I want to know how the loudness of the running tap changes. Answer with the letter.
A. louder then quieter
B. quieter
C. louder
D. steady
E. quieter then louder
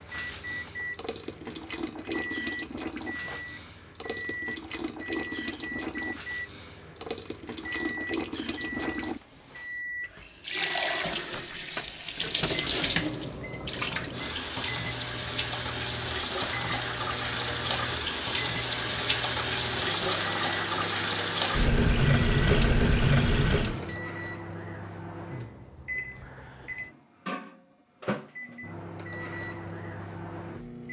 C.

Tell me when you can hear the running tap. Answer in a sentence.
You can hear the running tap from 0.0 to 23.9 s.